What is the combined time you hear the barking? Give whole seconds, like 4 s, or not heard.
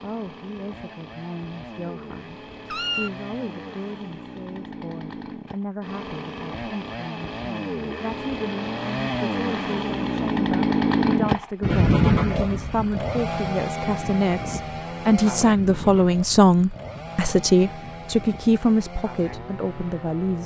not heard.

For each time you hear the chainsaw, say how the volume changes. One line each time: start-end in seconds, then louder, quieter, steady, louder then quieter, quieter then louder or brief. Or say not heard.
0.0-20.4 louder then quieter.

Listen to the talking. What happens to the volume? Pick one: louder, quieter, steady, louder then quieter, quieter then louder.
louder.